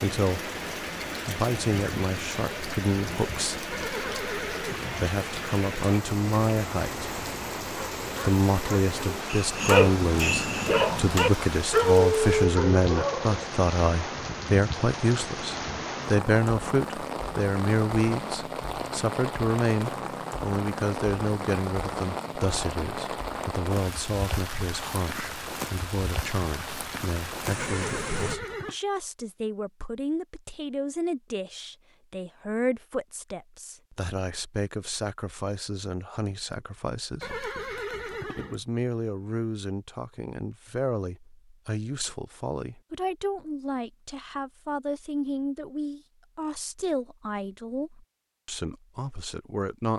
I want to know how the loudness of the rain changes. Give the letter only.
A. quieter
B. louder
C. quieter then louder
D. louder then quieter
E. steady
E.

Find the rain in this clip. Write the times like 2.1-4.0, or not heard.
0.0-28.4.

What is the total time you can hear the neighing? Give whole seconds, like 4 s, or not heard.
4 s.